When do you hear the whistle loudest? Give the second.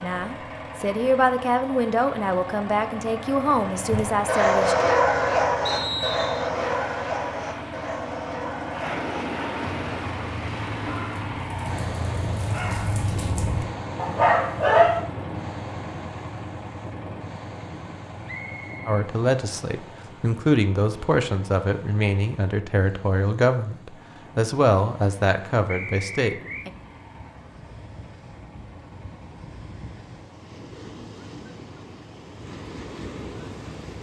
6 s.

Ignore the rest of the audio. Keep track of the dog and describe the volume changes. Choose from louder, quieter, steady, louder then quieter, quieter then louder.
quieter then louder.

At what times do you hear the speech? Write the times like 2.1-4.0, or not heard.
0.0-4.8, 18.9-26.7.